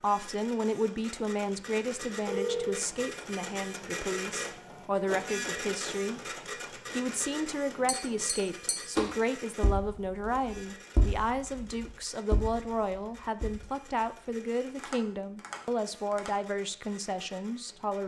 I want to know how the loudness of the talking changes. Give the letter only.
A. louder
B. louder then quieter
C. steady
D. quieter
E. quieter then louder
C.